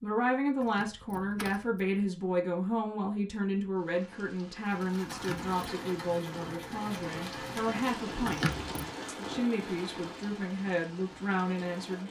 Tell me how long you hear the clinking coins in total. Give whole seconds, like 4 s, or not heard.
2 s.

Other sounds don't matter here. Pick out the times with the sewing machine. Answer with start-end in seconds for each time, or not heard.
4.6-12.0.